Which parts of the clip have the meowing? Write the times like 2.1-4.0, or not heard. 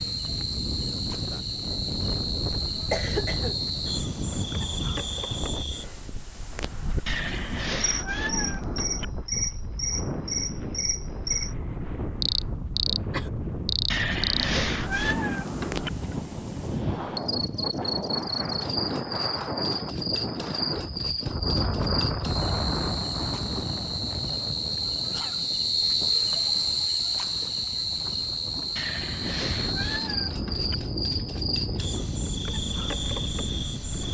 7.0-9.1, 13.9-15.9, 28.8-30.8.